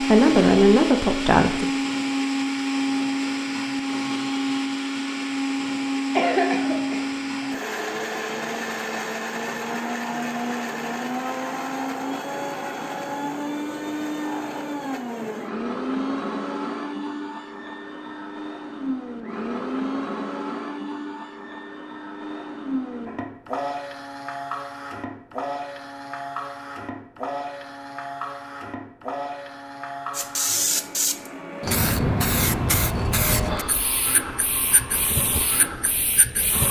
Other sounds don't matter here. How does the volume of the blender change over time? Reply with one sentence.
The volume of the blender goes down.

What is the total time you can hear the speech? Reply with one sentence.
You can hear the speech for 2 seconds altogether.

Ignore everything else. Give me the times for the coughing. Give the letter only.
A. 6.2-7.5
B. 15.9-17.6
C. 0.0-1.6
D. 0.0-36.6
A.